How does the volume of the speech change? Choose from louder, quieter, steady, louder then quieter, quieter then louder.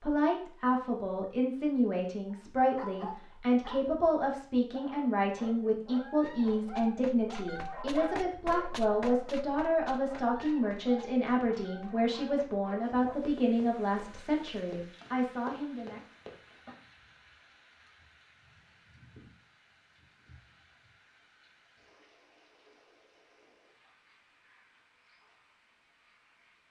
steady.